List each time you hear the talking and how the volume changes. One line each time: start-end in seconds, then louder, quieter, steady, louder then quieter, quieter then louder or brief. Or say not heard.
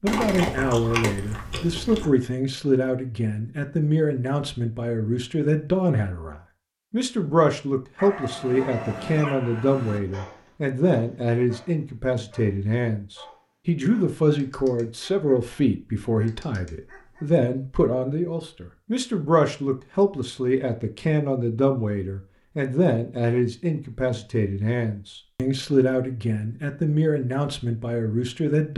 0.0-28.7 steady.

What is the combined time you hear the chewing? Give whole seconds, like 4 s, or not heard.
2 s.